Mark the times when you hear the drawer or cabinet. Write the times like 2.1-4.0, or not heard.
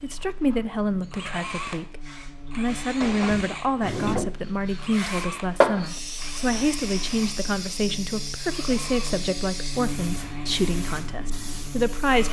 3.0-4.3.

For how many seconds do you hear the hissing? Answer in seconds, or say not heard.
12 s.